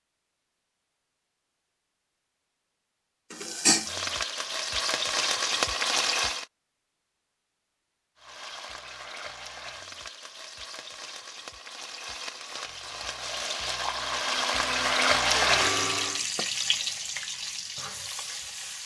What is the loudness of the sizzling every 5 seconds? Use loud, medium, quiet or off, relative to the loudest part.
loud, loud, medium, loud.